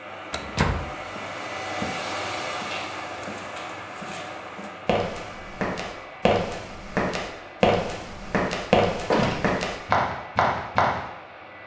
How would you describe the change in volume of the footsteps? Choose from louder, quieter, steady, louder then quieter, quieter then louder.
louder.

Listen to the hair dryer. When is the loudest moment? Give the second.
2 s.